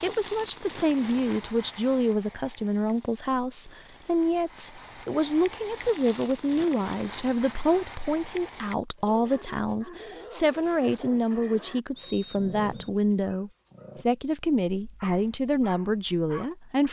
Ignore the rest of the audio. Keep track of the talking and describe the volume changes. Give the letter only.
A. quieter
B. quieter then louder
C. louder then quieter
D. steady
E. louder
D.